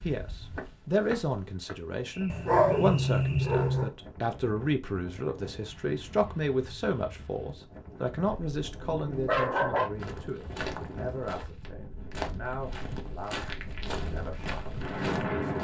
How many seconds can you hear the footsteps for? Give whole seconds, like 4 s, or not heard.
7 s.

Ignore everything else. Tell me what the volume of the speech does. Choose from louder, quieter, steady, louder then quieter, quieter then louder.
quieter.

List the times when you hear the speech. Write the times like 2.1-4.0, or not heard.
0.0-15.5.